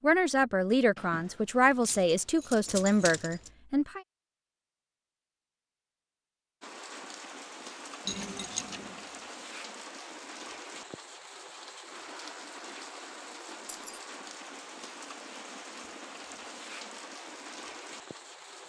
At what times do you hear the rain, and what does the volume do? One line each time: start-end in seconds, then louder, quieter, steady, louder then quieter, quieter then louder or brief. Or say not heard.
6.6-18.6 steady.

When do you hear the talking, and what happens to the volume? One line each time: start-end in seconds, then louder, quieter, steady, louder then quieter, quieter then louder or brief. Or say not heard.
0.0-4.0 steady.